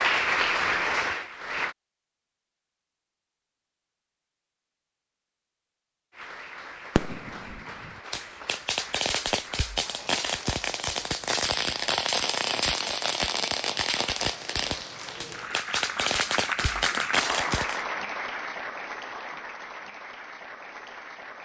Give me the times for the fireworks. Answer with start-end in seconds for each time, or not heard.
7.0-17.9.